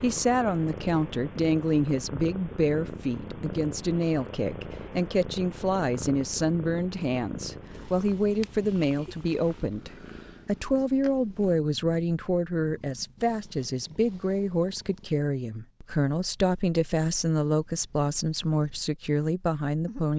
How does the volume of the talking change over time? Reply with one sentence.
The volume of the talking stays about the same.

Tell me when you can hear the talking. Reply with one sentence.
The talking can be heard from 0.0 to 20.1 s.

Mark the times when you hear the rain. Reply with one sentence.
You can't hear the rain here.